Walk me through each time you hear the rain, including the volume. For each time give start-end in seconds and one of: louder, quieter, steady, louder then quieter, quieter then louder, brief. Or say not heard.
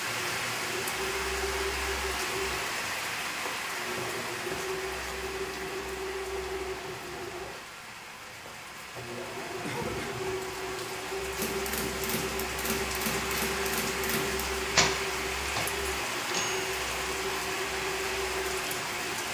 0.0-19.3 quieter then louder.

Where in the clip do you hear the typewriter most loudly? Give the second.
15 s.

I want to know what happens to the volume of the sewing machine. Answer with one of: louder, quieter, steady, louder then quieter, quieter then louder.
steady.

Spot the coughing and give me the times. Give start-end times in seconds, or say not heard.
9.6-10.4.